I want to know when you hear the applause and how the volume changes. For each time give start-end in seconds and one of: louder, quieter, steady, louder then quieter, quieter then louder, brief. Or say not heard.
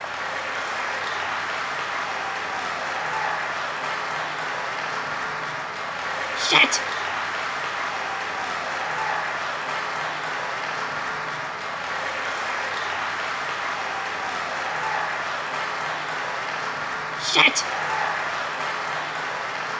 0.0-19.7 steady.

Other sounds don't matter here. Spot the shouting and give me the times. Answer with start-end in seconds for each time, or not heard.
6.3-6.8, 17.2-17.6.